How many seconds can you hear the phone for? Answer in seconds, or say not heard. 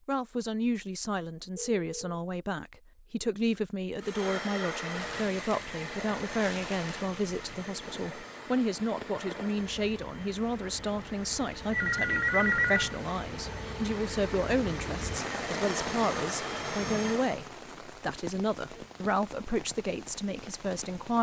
2 s.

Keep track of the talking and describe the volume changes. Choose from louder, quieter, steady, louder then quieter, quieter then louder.
steady.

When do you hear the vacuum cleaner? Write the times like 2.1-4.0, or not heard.
4.0-17.4.